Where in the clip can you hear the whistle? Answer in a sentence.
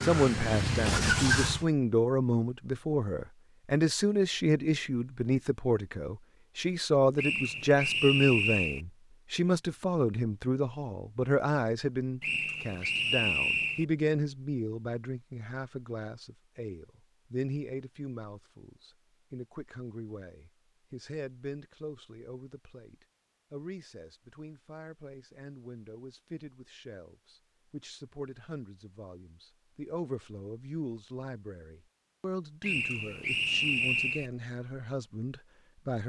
The whistle can be heard from 7.2 to 8.8 s, from 12.2 to 13.8 s and from 32.6 to 34.3 s.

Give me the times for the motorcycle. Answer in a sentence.
The motorcycle can be heard from 0.0 to 1.6 s.